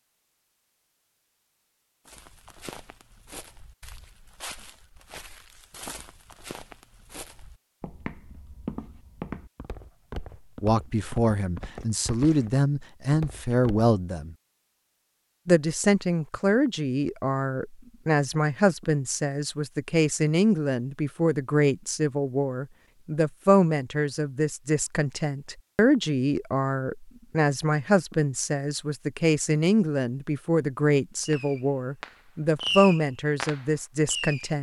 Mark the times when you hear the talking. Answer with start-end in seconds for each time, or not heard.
10.6-14.3, 15.4-34.5.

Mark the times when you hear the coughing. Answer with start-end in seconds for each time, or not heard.
not heard.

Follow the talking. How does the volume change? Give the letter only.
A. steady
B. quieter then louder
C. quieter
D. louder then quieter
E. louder
A.